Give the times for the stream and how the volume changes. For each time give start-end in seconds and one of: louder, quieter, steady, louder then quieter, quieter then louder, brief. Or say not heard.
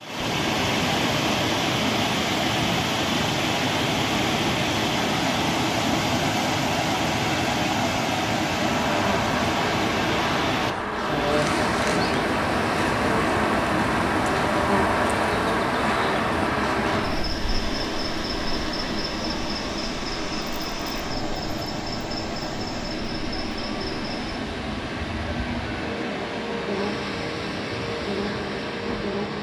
0.0-29.3 quieter.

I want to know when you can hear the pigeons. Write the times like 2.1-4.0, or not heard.
not heard.